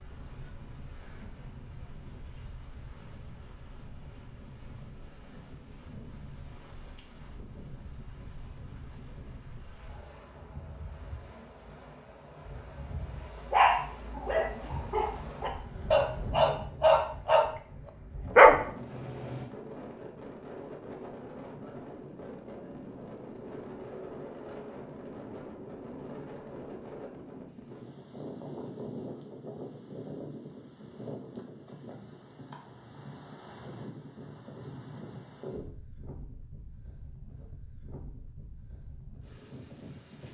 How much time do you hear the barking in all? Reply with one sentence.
The barking can be heard for 5 seconds in total.